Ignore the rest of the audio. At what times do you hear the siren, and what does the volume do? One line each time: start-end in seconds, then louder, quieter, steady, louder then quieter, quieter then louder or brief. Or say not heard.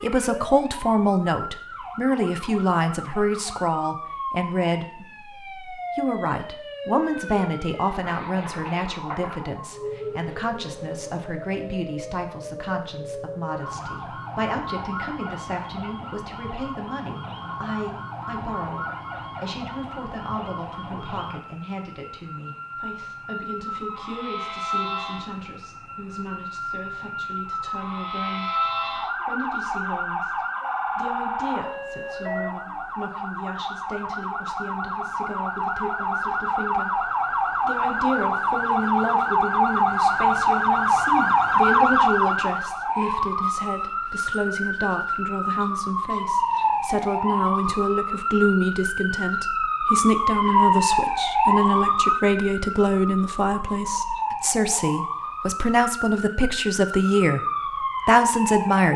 0.0-58.9 louder.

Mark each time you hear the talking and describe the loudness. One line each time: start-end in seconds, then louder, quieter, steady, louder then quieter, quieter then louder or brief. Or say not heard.
0.0-57.4 quieter then louder
58.0-58.9 brief.